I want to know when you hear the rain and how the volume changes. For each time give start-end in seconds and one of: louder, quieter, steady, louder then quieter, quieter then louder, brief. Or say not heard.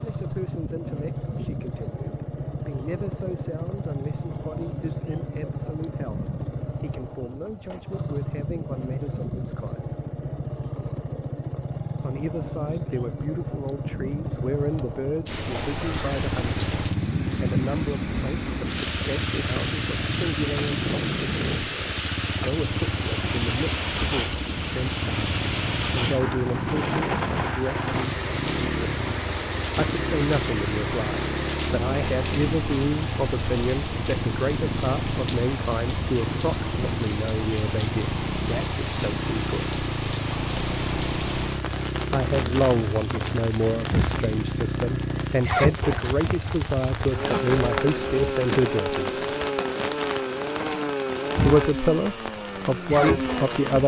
15.2-53.8 steady.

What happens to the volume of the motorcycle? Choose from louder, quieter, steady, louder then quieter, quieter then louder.
steady.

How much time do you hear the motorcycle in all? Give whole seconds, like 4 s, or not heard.
54 s.